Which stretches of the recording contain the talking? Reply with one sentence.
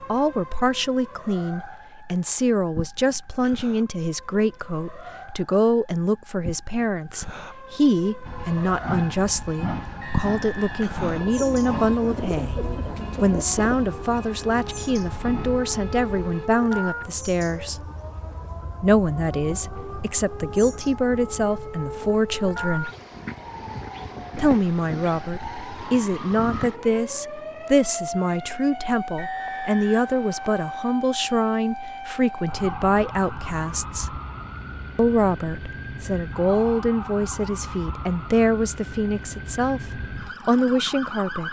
You can hear the talking from 0.1 to 12.6 s, from 13.2 to 17.9 s, from 18.8 to 22.9 s, from 24.4 to 34.2 s and from 35.0 to 41.4 s.